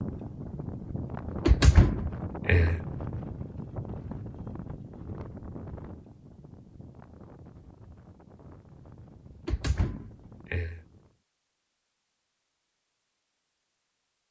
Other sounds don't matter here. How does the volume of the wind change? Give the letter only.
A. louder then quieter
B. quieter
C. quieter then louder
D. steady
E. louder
B.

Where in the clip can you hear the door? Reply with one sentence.
You can hear the door from 1.4 to 2.8 s and from 9.3 to 10.8 s.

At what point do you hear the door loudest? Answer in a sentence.
The loudest moment of the door is at 2 seconds.